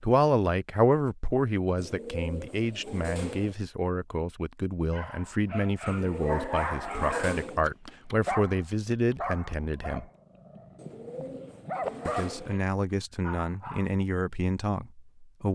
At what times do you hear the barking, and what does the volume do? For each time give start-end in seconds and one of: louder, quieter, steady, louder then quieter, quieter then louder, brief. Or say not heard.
4.9-12.6 quieter then louder
13.2-13.9 brief.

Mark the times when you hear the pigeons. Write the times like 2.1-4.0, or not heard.
1.8-3.5, 5.8-7.7, 10.8-12.6.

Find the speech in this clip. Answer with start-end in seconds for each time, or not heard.
0.0-10.1, 12.1-15.5.